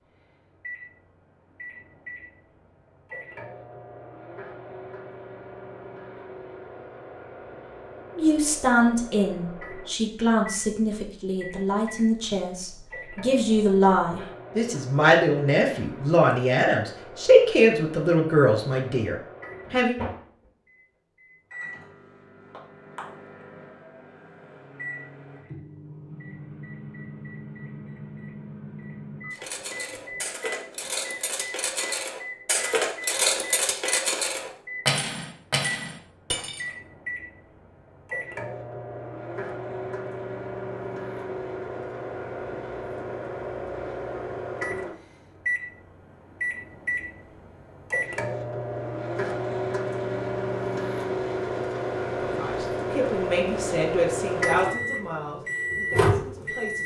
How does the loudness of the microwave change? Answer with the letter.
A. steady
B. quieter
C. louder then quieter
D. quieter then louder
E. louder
E.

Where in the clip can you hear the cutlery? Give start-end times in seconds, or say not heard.
29.3-36.7.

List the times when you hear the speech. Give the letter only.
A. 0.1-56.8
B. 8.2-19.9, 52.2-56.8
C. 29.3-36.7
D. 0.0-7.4
B.